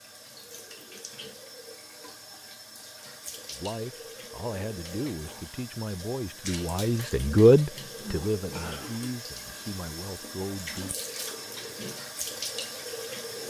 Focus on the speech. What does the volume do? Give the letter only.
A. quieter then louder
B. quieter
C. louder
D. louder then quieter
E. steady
D.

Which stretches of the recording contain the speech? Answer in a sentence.
You can hear the speech from 3.5 to 10.9 s.